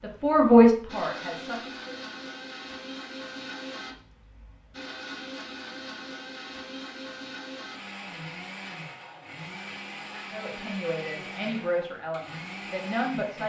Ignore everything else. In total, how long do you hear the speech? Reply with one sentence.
The speech can be heard for 5 seconds in total.